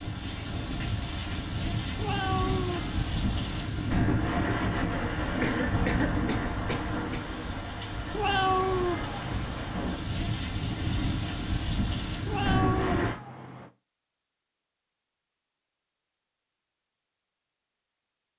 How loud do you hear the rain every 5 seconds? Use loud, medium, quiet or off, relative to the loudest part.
loud, loud, loud, off.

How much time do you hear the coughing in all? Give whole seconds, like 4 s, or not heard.
2 s.